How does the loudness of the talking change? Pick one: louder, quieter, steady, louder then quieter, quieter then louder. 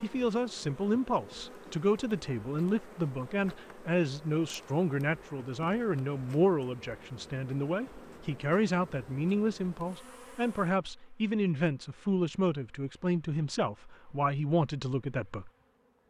steady.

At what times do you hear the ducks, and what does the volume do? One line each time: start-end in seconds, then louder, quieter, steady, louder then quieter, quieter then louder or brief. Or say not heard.
not heard.